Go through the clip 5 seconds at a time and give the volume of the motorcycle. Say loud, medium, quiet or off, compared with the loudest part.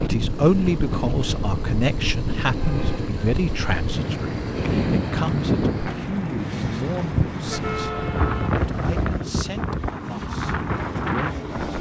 loud, medium, medium.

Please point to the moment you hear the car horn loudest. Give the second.
8 s.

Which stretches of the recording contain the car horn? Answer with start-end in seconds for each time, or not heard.
2.4-3.0, 7.5-9.1.